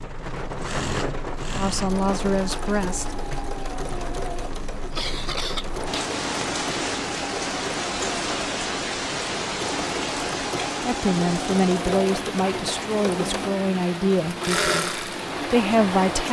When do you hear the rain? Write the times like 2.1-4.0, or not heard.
0.0-16.2.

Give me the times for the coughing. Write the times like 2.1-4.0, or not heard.
4.7-6.0.